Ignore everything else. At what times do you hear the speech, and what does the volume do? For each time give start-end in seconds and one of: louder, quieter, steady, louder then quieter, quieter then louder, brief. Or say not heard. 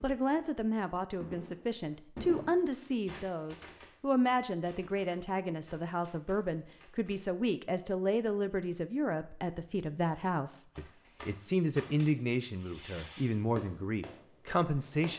0.0-15.1 steady.